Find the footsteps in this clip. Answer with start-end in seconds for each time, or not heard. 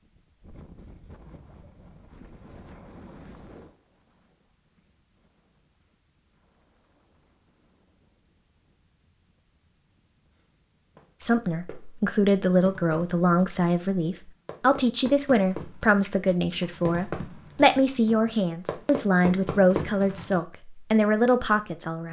not heard.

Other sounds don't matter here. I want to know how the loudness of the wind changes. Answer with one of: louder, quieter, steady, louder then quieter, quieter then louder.
quieter.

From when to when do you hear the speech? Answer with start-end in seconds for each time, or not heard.
11.2-22.0.